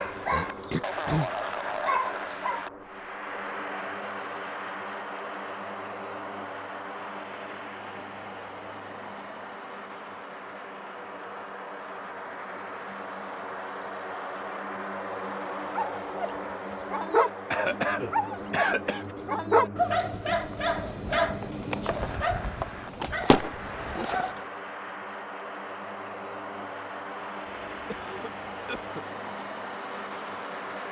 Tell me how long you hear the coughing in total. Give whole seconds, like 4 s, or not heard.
4 s.